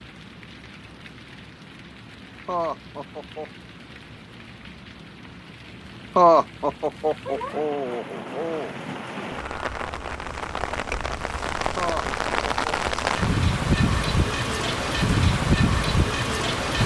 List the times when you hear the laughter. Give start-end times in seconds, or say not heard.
2.5-3.5, 6.2-8.7, 11.8-12.8.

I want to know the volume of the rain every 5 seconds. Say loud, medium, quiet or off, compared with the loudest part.
quiet, quiet, loud, loud.